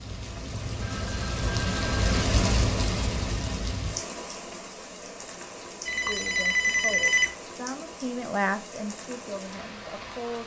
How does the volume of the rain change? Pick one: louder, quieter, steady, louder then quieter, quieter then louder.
quieter.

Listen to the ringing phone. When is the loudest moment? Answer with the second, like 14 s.
7 s.